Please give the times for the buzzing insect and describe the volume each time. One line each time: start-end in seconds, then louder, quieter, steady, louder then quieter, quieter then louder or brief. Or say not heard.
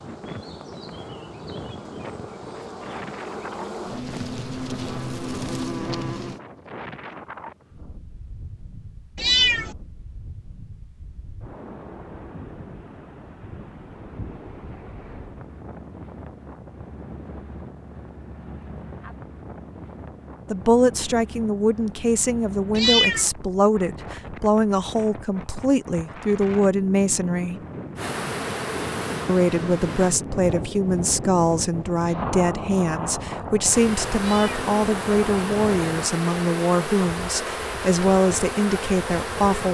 0.0-6.4 louder
27.9-30.1 brief
33.6-39.6 steady.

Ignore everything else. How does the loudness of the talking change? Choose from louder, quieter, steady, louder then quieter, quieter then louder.
steady.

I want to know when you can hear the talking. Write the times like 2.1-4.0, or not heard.
20.5-27.6, 29.2-39.6.